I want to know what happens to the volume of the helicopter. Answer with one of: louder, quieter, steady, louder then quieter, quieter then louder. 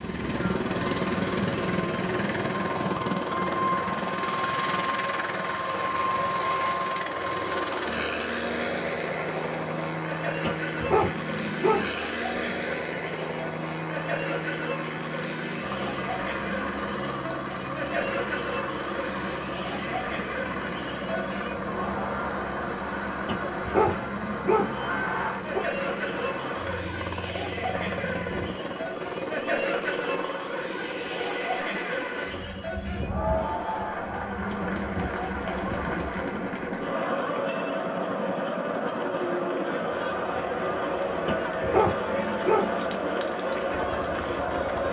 quieter.